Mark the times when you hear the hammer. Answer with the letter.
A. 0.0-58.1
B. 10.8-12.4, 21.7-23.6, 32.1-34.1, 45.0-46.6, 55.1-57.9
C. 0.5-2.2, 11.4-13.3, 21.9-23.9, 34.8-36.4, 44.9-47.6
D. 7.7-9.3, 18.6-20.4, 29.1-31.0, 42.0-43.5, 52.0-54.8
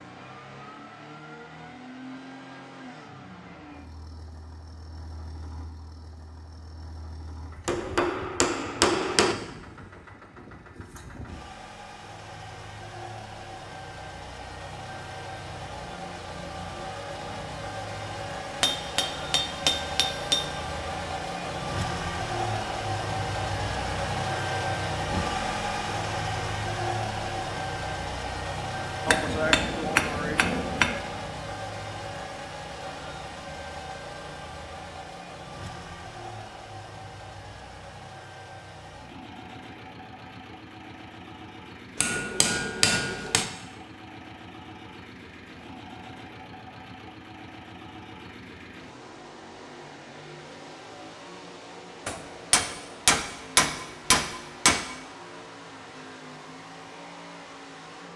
D.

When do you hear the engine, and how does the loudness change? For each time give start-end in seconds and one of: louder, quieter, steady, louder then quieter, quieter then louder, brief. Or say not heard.
0.0-58.1 louder then quieter.